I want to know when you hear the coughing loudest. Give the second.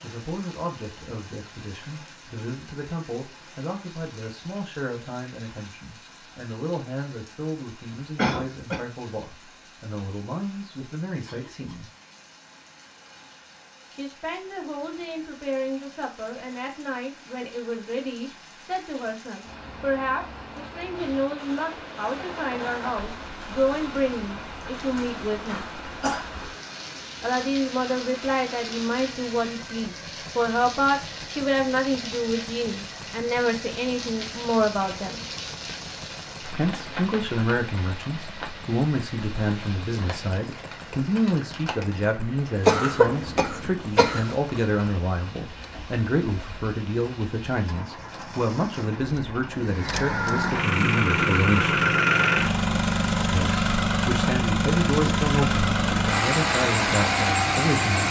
43 s.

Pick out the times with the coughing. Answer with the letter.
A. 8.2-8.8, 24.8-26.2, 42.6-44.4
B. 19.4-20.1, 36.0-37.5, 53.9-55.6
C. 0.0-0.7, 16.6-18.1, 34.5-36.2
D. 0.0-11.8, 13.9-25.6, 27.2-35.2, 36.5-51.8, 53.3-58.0
A.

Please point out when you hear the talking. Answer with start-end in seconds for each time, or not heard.
0.0-11.8, 13.9-25.6, 27.2-35.2, 36.5-51.8, 53.3-58.0.